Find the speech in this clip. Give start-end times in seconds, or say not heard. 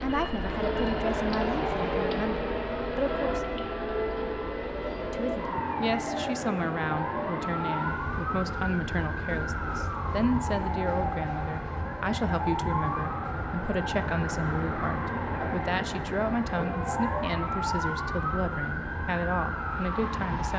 0.0-3.4, 5.0-20.5.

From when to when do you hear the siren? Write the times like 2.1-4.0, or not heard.
0.0-20.5.